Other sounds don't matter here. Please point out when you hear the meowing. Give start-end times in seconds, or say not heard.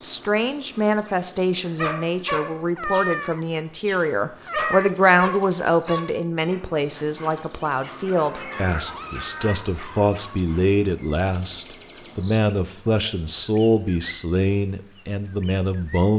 2.8-5.0, 8.2-9.6.